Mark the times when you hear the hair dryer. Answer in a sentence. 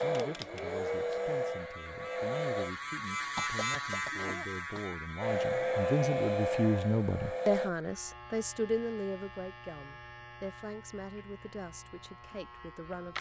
The hair dryer can be heard from 0.0 to 2.7 s and from 5.2 to 7.7 s.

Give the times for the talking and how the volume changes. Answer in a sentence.
The talking can be heard from 0.0 to 13.1 s, getting louder then quieter.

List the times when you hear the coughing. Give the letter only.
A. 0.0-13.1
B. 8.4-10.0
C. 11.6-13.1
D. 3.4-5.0
D.